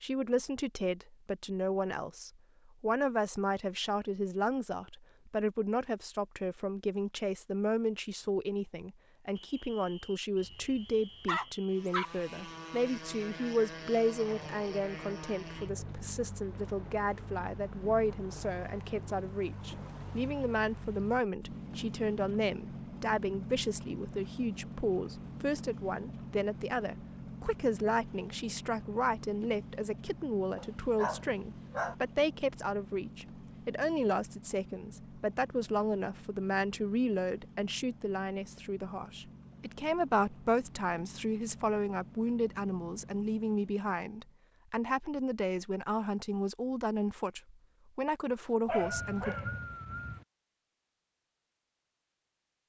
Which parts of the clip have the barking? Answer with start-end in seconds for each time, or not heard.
10.4-12.1, 30.6-31.9, 48.6-50.2.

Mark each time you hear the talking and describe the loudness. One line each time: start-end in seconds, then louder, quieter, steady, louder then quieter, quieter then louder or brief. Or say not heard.
0.0-49.4 steady.